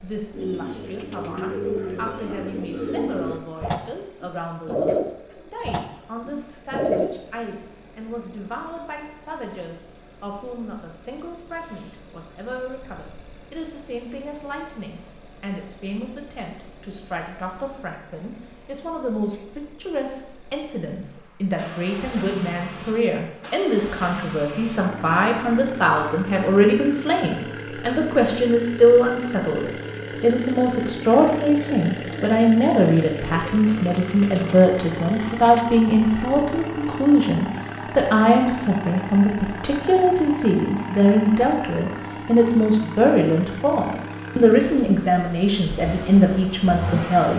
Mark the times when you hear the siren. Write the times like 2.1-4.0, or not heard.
not heard.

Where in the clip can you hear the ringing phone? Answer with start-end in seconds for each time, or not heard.
not heard.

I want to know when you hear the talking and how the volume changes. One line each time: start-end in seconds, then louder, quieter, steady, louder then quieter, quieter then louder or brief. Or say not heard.
0.0-47.3 louder.